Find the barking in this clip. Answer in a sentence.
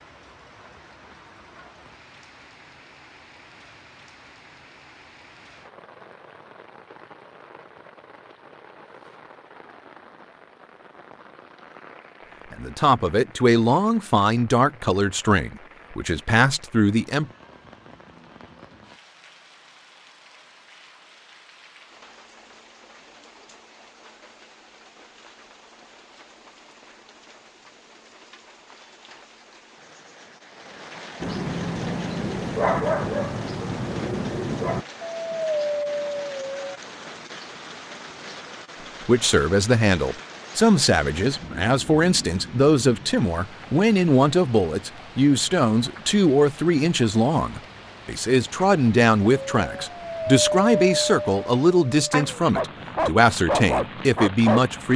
You can hear the barking from 31.2 to 36.8 s and from 49.5 to 54.6 s.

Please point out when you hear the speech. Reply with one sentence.
The speech can be heard from 12.5 to 17.3 s and from 39.0 to 54.9 s.